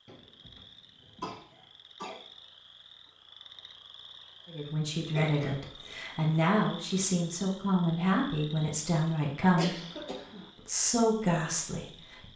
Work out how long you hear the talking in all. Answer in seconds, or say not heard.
7 s.